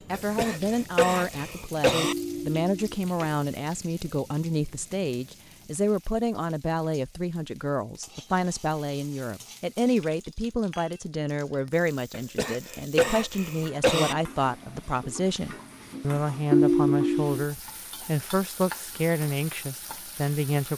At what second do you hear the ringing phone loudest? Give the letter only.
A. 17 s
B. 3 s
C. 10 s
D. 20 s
A.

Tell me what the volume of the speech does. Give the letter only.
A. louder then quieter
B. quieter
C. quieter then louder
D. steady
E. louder
D.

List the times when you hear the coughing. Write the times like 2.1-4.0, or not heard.
0.1-2.1, 12.1-14.2.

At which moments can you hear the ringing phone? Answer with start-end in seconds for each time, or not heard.
2.0-2.8, 16.5-17.4.